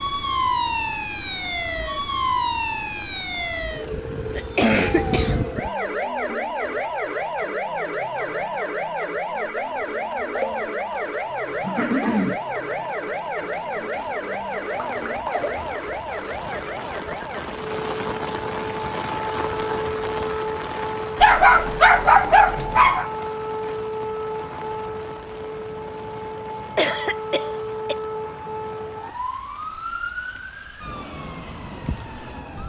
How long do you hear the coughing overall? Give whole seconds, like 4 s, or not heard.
3 s.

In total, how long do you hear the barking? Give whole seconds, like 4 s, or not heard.
2 s.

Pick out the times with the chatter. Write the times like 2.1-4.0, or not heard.
not heard.